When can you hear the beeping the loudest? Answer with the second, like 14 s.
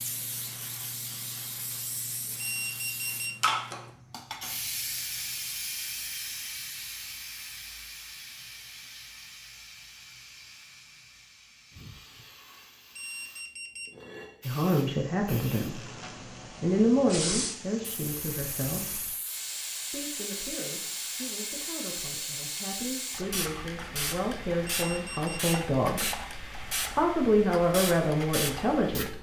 3 s.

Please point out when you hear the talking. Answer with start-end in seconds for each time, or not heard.
14.4-15.9, 16.6-19.0, 19.9-29.1.